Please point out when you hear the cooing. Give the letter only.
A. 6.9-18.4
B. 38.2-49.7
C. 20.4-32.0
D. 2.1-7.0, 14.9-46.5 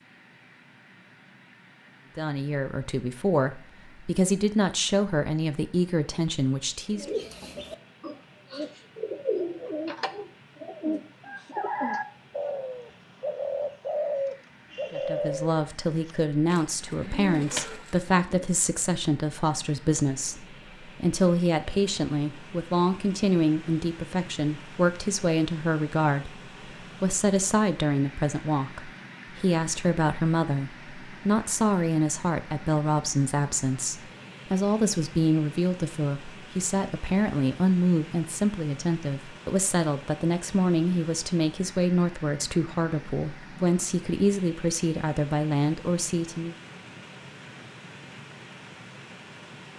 A.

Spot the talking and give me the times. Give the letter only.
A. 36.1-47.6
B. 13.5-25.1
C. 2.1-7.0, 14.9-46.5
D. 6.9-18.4
C.